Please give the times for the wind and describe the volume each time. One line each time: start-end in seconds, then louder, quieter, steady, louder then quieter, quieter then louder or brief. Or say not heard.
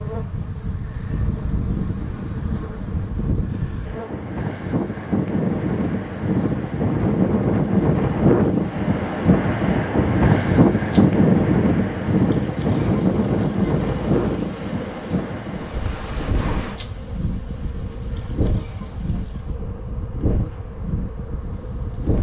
0.0-22.1 louder then quieter.